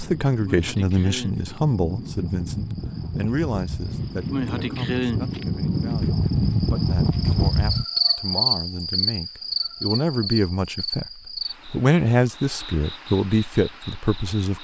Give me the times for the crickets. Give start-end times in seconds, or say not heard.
0.0-14.5.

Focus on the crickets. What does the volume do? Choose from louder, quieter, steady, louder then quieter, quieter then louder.
louder then quieter.